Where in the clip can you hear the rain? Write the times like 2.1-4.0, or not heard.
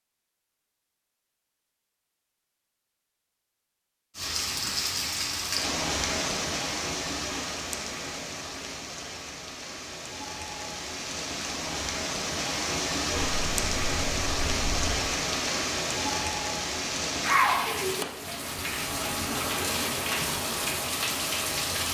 4.2-21.8.